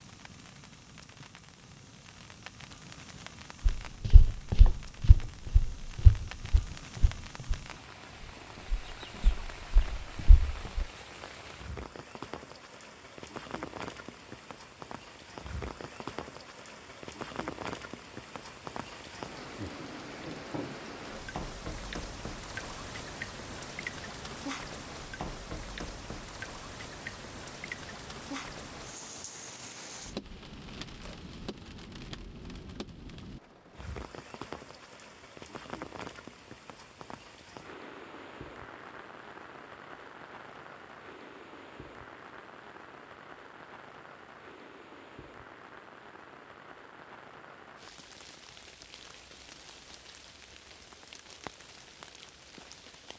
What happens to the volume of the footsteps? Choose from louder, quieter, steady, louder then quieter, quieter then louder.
quieter then louder.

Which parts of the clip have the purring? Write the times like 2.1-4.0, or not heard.
not heard.